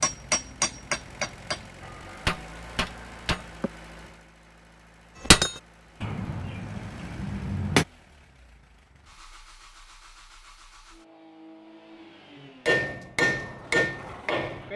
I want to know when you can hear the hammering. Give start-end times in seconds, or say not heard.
0.0-3.7, 5.2-7.8, 12.7-14.7.